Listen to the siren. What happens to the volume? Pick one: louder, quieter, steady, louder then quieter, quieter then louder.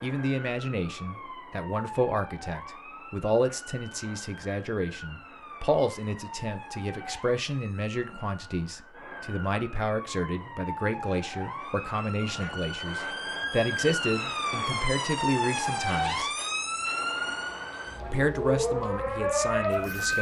louder.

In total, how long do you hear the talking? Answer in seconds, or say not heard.
18 s.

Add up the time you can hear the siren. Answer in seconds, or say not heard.
20 s.